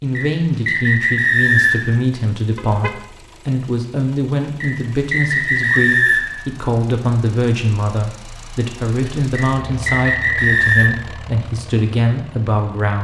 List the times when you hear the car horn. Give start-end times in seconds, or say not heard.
2.5-3.0.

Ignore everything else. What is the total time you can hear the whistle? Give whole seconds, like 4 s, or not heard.
5 s.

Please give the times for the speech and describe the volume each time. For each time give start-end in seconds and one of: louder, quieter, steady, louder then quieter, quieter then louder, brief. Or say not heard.
0.0-12.9 steady.